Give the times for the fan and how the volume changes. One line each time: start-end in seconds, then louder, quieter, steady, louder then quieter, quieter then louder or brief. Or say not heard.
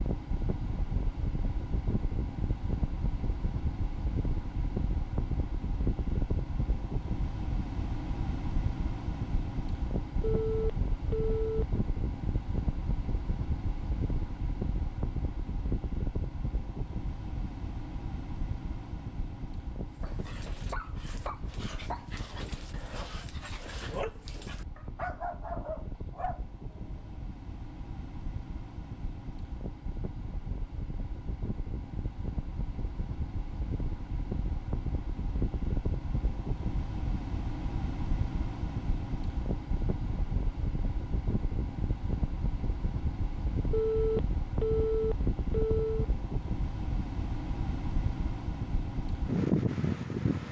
0.0-50.4 quieter then louder.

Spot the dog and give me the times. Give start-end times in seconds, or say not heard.
19.9-27.2.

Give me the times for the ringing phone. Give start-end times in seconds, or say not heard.
10.2-11.7, 43.7-46.0.